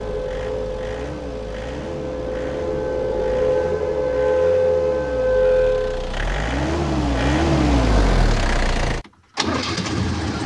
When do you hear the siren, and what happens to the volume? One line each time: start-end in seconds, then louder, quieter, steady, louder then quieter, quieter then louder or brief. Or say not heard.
0.0-6.2 louder.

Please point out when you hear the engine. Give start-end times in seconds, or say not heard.
0.0-10.4.